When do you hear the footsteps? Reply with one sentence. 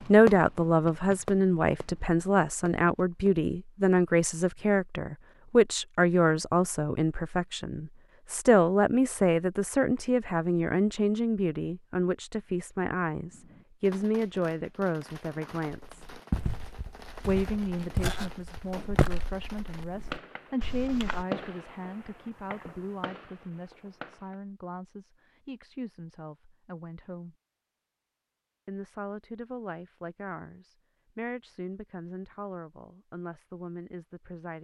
The footsteps can be heard from 15.8 to 21.2 s.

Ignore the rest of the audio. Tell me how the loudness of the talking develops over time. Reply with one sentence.
The volume of the talking goes down.